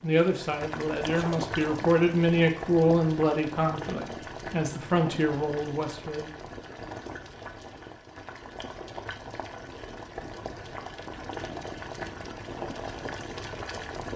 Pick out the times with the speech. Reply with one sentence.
You can hear the speech from 0.0 to 6.3 s.